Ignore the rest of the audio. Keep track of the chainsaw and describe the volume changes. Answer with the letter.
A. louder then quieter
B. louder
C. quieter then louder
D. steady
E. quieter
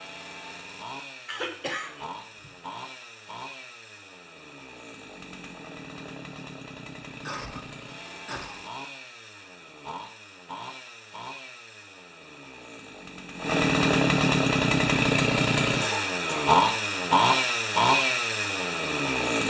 B.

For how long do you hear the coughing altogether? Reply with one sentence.
You can hear the coughing for 4 seconds altogether.